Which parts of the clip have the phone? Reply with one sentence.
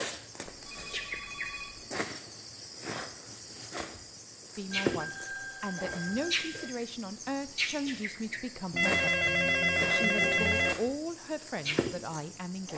The phone can be heard from 0.5 to 1.9 s, from 4.7 to 6.7 s and from 8.7 to 10.8 s.